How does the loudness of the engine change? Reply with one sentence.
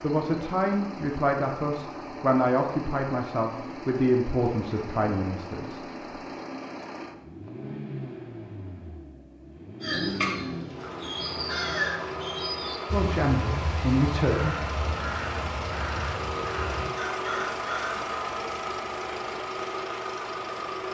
The volume of the engine goes up.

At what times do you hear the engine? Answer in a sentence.
The engine can be heard from 0.0 to 20.8 s.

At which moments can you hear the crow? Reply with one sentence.
The crow can be heard from 9.8 to 18.1 s.